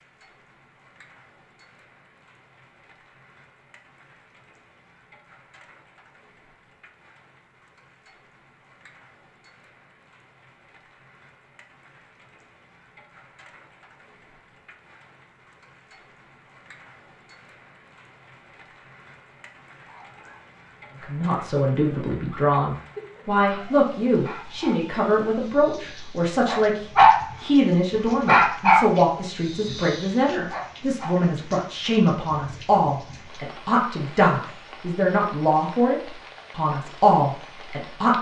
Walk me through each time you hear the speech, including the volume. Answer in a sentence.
You can hear the speech from 21.0 to 38.1 s, at a steady volume.